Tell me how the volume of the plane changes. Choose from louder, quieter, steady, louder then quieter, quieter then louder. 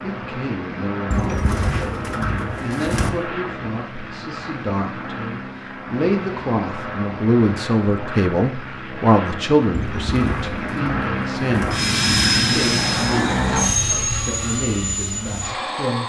louder.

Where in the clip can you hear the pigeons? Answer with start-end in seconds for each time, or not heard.
1.1-3.1, 9.7-11.8.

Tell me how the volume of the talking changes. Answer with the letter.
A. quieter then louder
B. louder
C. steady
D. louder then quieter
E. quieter
D.